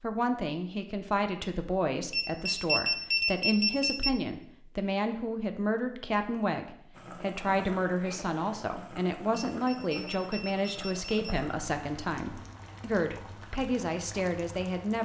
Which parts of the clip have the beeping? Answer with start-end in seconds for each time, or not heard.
2.1-4.1, 9.3-11.1.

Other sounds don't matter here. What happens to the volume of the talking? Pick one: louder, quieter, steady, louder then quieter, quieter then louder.
steady.